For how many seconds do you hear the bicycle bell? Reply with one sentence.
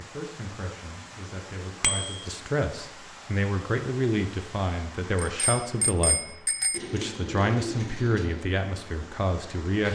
You can hear the bicycle bell for 2 seconds altogether.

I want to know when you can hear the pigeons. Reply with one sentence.
The pigeons can be heard from 6.7 to 8.4 s.